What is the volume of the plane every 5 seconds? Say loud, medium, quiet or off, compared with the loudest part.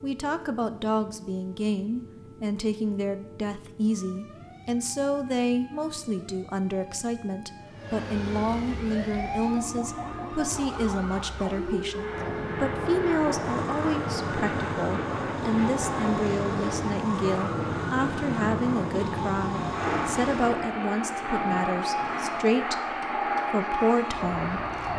quiet, quiet, loud, loud, loud.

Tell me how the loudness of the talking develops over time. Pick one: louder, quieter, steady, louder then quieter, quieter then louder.
steady.